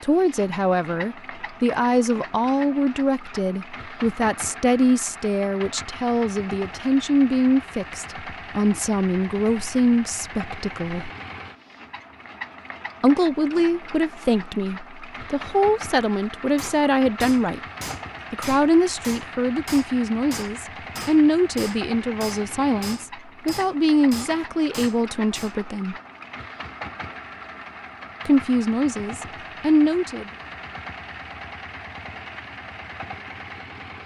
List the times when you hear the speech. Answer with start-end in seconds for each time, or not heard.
0.0-11.1, 13.0-17.6, 18.3-25.9, 28.2-30.3.